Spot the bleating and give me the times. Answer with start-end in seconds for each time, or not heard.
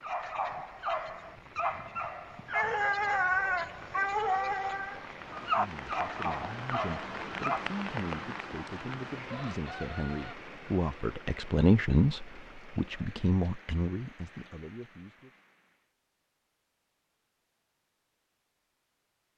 not heard.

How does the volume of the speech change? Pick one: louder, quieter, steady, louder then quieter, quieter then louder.
louder then quieter.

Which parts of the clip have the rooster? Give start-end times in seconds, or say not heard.
9.2-10.3.